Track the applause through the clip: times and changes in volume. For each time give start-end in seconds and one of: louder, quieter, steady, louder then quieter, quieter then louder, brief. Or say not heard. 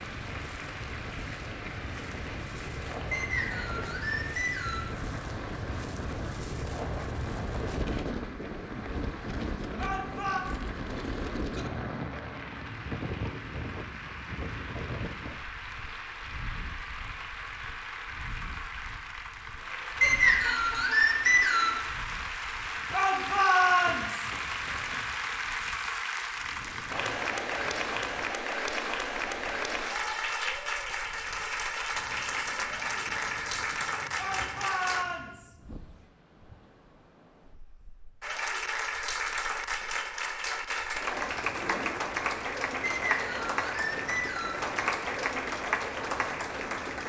0.0-35.0 louder
38.2-47.0 steady.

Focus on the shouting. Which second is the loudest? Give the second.
24 s.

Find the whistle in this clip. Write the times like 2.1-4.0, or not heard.
3.1-4.9, 20.0-21.8, 42.8-44.6.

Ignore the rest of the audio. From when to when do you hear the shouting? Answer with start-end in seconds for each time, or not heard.
9.8-10.4, 22.9-24.3, 34.1-35.5.